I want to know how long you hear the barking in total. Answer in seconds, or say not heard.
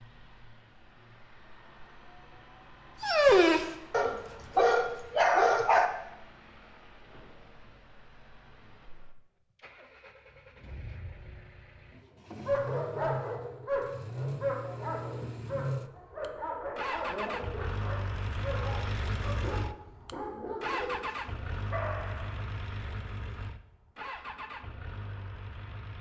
13 s.